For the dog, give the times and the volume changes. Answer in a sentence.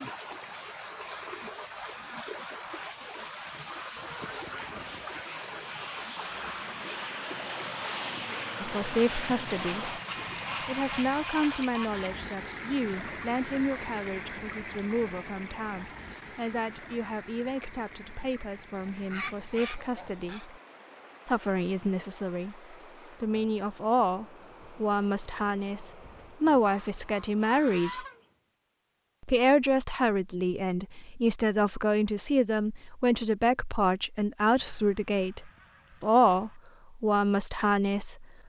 You can't hear the dog here.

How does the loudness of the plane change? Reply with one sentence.
The volume of the plane goes up.